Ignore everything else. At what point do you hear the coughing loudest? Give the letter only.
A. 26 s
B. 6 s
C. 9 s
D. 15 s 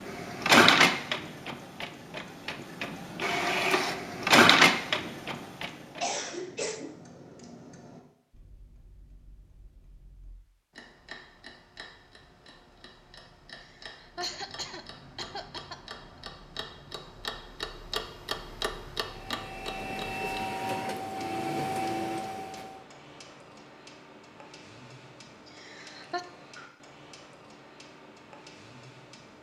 B.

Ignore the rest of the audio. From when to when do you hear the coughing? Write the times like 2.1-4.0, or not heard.
6.0-7.0, 13.6-15.8, 25.4-26.2.